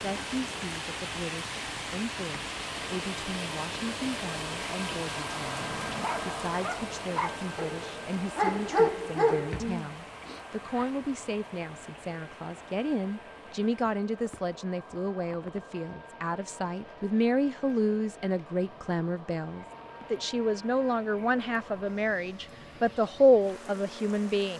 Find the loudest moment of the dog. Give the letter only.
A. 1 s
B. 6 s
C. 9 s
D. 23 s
C.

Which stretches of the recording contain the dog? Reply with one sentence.
You can hear the dog from 5.5 to 10.8 s.